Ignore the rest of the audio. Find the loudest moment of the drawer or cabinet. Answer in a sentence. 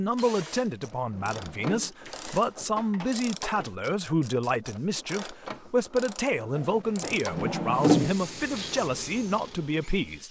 The loudest moment of the drawer or cabinet is at 8 seconds.